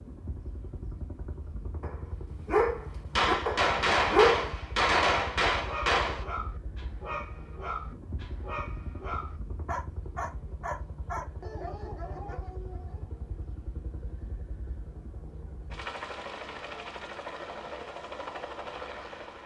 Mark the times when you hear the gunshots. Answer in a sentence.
You can hear the gunshots from 3.1 to 6.2 s.